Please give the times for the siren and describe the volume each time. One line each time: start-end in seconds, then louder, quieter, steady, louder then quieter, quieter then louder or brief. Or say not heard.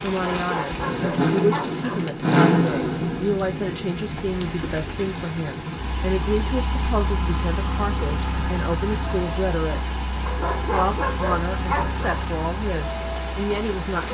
not heard.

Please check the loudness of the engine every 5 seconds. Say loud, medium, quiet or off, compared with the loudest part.
loud, medium, medium.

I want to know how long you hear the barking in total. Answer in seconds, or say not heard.
4 s.